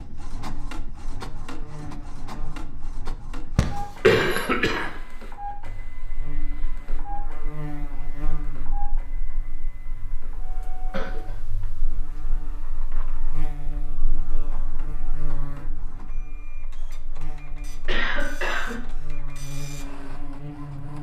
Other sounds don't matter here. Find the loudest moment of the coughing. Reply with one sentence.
The loudest moment of the coughing is at 4 seconds.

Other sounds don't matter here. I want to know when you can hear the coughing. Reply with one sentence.
The coughing can be heard from 3.5 to 5.0 s, from 10.2 to 11.5 s and from 17.9 to 18.8 s.